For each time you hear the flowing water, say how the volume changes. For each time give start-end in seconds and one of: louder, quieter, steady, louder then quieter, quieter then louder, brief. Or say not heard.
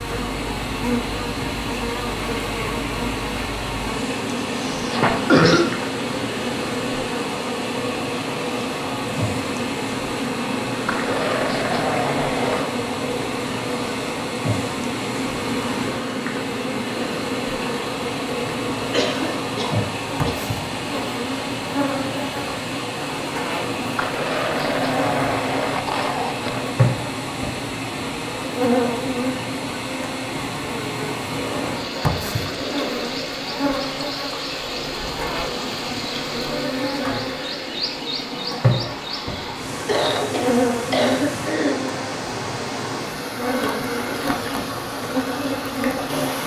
0.0-46.4 steady.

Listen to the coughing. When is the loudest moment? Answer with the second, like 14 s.
5 s.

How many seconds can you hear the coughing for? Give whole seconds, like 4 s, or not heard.
4 s.